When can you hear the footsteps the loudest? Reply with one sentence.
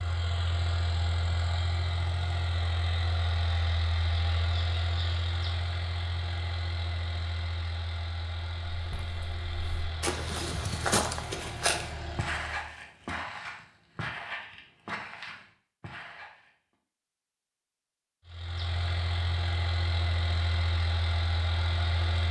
The volume of the footsteps peaks at 11 seconds.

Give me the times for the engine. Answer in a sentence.
You can hear the engine from 0.0 to 12.8 s and from 18.2 to 22.2 s.